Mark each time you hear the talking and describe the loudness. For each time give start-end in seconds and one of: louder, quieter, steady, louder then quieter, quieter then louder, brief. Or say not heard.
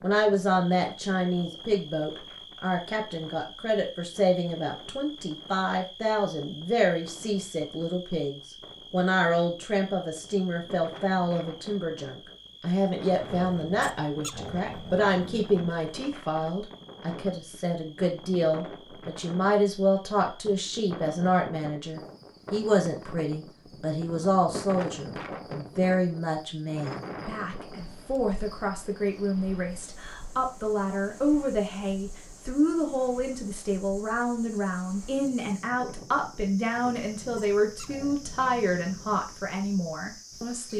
0.0-40.7 steady.